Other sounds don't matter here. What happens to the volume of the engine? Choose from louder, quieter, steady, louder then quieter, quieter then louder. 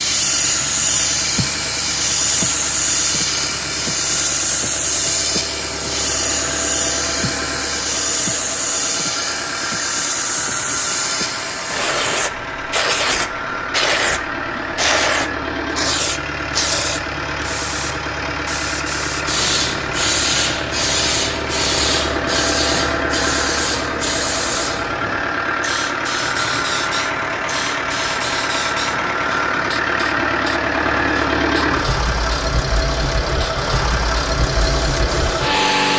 louder.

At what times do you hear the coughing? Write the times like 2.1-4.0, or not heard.
not heard.